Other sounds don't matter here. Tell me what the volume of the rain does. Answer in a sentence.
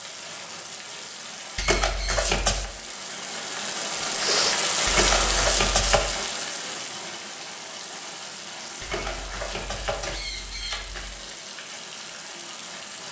The volume of the rain goes up, then down.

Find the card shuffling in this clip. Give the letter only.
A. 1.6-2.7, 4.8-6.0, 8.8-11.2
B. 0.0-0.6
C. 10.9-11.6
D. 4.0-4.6
A.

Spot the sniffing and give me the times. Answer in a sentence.
The sniffing can be heard from 4.0 to 4.6 s.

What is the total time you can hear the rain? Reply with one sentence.
The rain can be heard for 13 seconds in total.